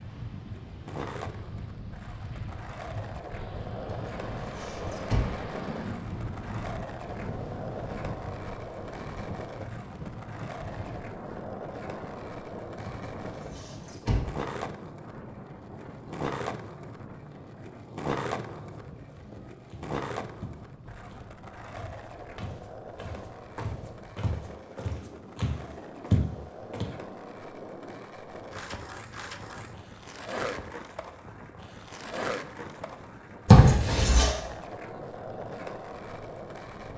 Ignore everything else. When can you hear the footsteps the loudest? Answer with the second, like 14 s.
26 s.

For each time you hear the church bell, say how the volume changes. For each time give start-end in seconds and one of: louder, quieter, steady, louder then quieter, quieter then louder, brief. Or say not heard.
not heard.